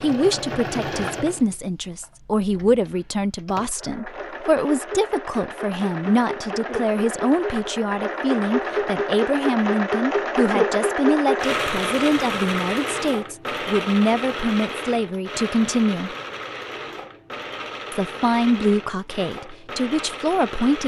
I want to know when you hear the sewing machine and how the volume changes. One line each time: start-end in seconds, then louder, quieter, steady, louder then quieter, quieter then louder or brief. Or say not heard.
0.0-20.8 louder then quieter.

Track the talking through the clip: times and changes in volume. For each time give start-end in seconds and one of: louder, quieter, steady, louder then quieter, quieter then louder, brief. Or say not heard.
0.0-16.1 steady
17.9-20.8 brief.